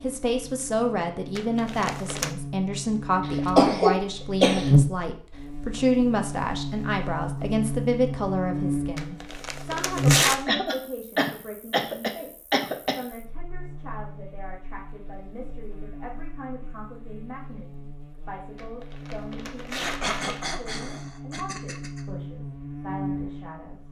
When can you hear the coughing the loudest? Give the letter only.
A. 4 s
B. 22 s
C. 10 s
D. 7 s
A.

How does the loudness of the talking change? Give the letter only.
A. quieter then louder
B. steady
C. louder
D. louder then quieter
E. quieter
E.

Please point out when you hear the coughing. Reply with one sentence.
The coughing can be heard from 3.2 to 4.7 s, from 10.4 to 12.9 s and from 19.8 to 22.1 s.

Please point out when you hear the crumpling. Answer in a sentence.
The crumpling can be heard from 1.4 to 2.3 s, from 8.9 to 10.4 s and from 18.6 to 20.6 s.